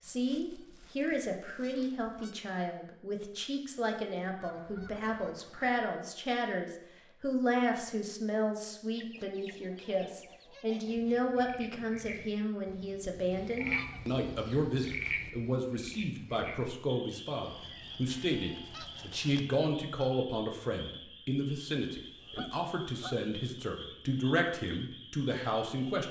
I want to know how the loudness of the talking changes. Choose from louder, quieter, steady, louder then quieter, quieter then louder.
steady.